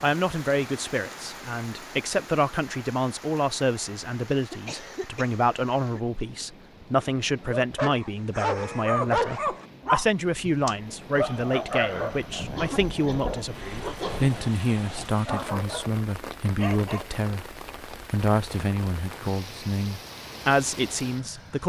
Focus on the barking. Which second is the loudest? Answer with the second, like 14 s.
9 s.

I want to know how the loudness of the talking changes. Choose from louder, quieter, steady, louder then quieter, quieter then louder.
steady.